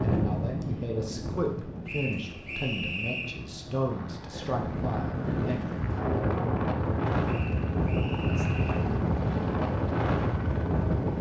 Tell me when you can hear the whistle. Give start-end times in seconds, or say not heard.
1.9-3.4, 7.2-8.8.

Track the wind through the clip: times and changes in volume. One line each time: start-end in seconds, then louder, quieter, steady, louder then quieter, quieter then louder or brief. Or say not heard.
0.0-11.1 quieter then louder.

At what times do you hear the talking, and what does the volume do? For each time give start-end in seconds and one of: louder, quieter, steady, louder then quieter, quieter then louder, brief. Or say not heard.
0.0-5.8 steady.